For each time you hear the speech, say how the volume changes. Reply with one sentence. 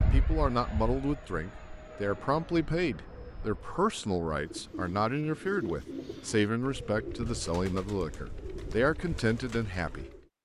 You can hear the speech from 0.0 to 10.1 s, at a steady volume.